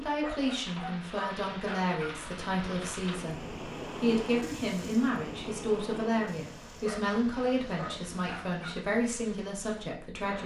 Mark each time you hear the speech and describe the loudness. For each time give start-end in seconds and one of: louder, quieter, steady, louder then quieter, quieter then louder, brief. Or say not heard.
0.0-10.4 steady.